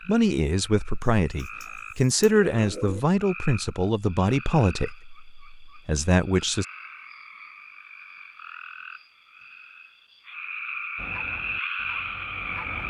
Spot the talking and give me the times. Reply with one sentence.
The talking can be heard from 0.1 to 6.7 s.